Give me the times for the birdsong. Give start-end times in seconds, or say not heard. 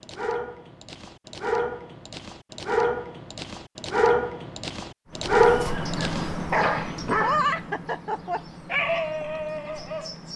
5.0-10.3.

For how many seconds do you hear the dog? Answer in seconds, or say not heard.
10 s.